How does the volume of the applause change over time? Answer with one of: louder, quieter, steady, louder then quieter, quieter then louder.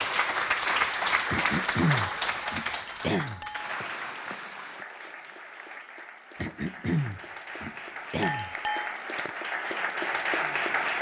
quieter then louder.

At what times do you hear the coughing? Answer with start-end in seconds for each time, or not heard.
1.3-3.4, 6.3-8.5.